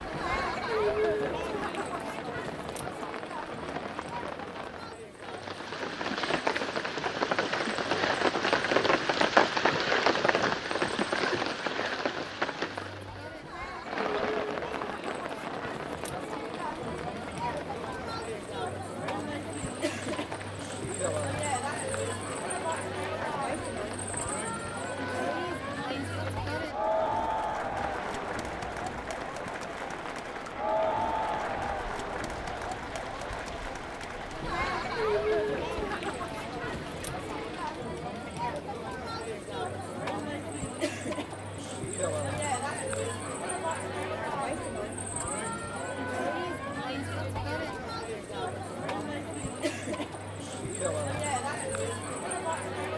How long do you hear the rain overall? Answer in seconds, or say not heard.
38 s.